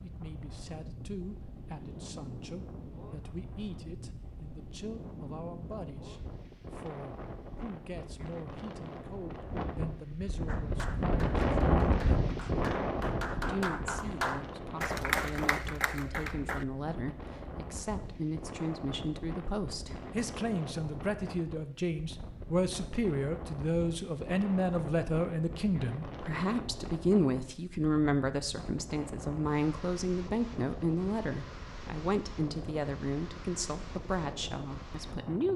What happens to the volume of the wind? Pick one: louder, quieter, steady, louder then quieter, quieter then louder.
louder then quieter.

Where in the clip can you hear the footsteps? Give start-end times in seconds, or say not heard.
not heard.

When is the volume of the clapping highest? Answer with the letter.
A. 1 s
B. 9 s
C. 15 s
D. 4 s
C.